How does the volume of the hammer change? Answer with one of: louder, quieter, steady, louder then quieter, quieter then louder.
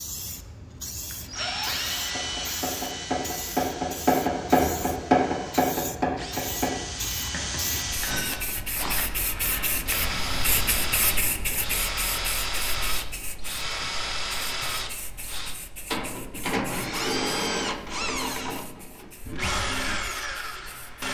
louder then quieter.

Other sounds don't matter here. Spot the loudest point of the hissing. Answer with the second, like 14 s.
11 s.